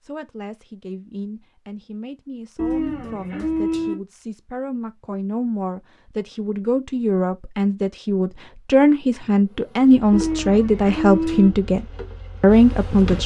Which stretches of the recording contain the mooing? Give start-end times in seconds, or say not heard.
2.5-4.0, 10.1-11.5.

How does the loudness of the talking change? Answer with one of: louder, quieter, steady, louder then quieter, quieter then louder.
louder.